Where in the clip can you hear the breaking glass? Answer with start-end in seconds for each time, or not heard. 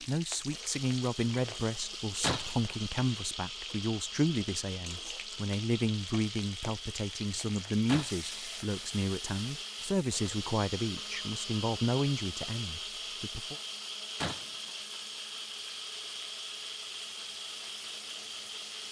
2.2-2.9, 7.8-8.6, 14.2-14.8.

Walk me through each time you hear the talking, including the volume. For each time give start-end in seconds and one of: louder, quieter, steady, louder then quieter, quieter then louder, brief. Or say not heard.
0.0-13.6 steady.